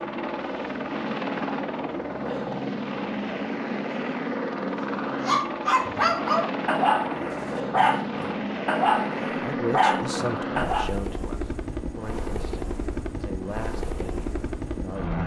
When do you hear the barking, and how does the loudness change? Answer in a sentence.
The barking can be heard from 5.2 to 10.9 s, at a steady volume.